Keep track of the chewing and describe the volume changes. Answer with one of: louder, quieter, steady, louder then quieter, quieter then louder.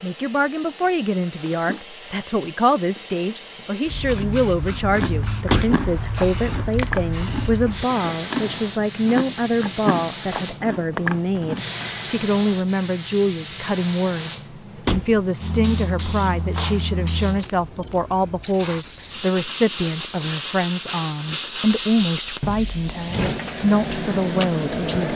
steady.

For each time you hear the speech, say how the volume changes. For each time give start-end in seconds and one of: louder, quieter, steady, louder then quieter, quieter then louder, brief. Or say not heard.
0.0-25.1 steady.